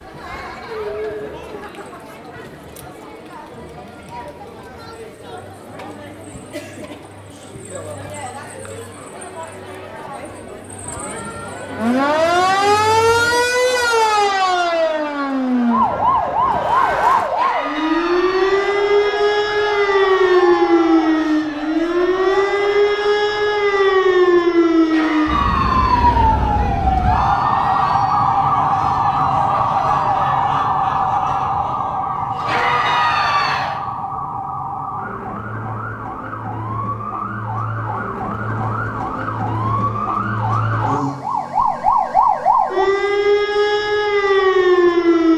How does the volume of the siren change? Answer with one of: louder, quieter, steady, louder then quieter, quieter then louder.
quieter then louder.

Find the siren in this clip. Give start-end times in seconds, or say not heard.
11.8-45.3.